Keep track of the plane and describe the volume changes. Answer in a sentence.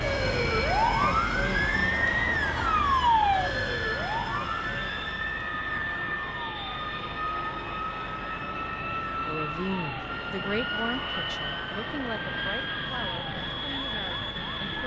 The loudness of the plane stays about the same.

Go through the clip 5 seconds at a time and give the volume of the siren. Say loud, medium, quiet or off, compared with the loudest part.
loud, quiet, quiet.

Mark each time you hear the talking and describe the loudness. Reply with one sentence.
The talking can be heard from 9.2 to 14.8 s, getting quieter.